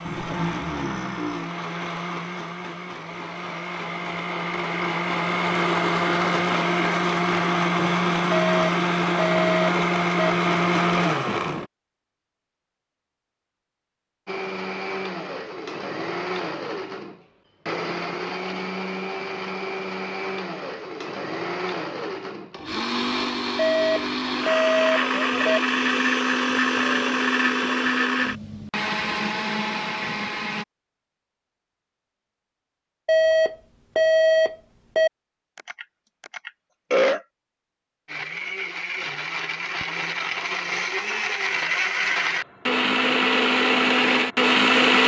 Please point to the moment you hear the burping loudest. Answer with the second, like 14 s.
37 s.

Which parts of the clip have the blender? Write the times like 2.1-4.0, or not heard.
0.0-11.7, 14.2-30.6, 38.0-45.0.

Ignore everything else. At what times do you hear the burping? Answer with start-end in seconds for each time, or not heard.
0.1-1.5, 35.5-37.2.